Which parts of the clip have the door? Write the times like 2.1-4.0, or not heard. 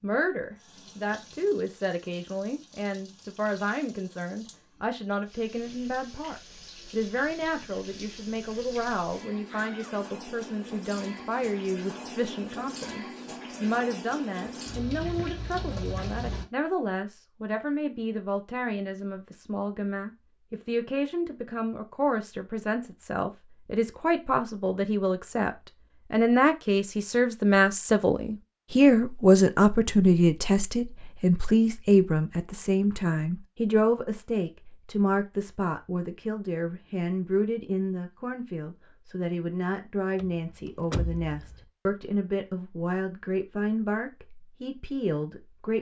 9.4-9.9, 40.1-41.6.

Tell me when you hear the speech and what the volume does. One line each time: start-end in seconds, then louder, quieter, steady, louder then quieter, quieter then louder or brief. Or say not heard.
0.0-45.7 louder then quieter.